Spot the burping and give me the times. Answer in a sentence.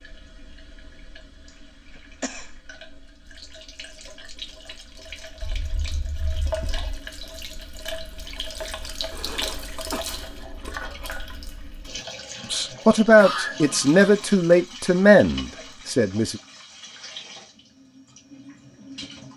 You can't hear the burping here.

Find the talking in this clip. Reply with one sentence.
The talking can be heard from 12.5 to 16.4 s.